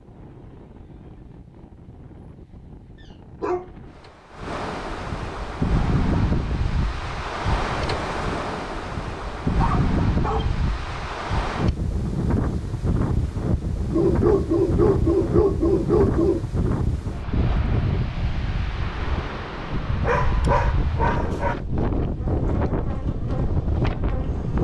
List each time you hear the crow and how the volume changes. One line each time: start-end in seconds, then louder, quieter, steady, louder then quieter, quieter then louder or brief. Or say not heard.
not heard.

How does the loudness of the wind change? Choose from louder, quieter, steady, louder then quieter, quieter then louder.
louder.